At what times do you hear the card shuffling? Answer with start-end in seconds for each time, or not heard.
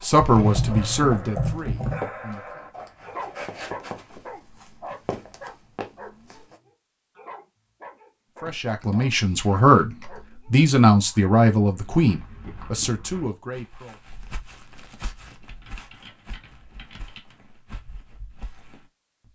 not heard.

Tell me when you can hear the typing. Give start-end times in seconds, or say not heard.
0.1-2.0, 8.4-10.2, 15.4-17.4.